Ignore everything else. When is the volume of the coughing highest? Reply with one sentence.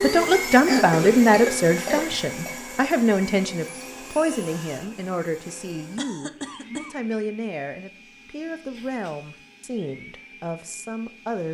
The loudest moment of the coughing is at 1 second.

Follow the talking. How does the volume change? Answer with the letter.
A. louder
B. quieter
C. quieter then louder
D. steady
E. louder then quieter
B.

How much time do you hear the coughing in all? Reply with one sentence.
You can hear the coughing for 3 seconds altogether.